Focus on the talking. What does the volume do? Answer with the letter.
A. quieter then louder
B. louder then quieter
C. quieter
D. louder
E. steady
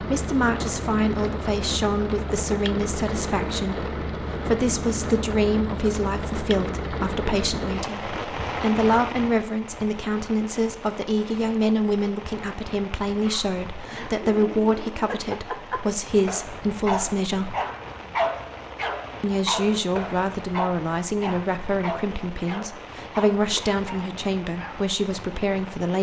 E.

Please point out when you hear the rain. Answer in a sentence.
You can hear the rain from 0.0 to 25.9 s.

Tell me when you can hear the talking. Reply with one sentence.
You can hear the talking from 0.0 to 17.6 s and from 19.2 to 25.9 s.